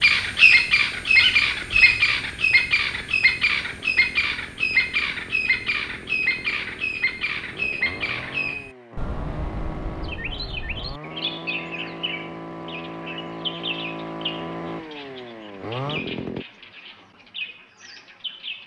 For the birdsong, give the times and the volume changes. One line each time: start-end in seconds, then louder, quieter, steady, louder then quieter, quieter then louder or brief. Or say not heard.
0.0-18.6 quieter.